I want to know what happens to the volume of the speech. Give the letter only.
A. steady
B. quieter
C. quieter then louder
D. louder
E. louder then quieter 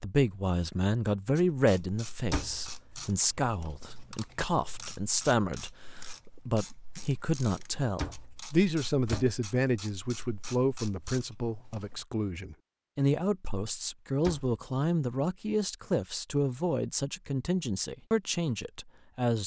A.